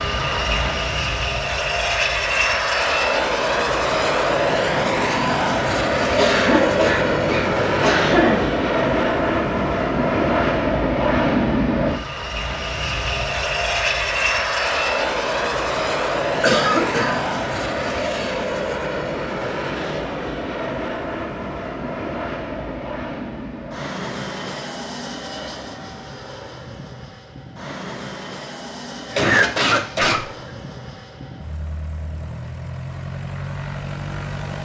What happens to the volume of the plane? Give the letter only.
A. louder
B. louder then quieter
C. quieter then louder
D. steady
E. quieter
E.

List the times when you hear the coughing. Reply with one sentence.
You can hear the coughing from 6.2 to 8.5 s, from 16.4 to 17.3 s and from 29.1 to 30.4 s.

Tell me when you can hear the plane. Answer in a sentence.
You can hear the plane from 0.0 to 34.6 s.